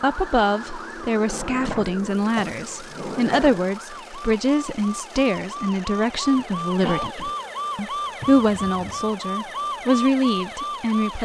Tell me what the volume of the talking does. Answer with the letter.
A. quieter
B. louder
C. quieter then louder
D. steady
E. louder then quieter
D.